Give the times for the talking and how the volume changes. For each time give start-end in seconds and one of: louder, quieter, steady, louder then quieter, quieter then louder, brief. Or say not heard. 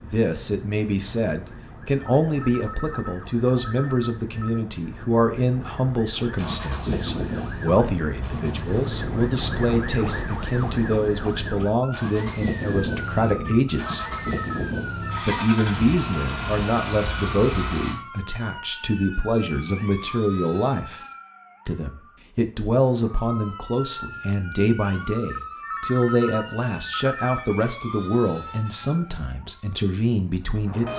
0.0-14.1 steady
15.2-21.0 quieter then louder
21.6-30.9 steady.